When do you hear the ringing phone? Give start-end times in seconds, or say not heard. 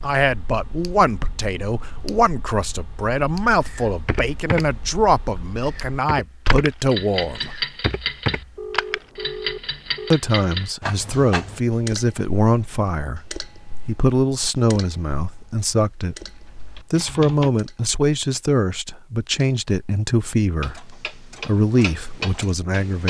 8.6-10.2.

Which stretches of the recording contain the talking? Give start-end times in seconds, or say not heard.
0.0-7.7, 10.1-16.1, 16.9-23.0.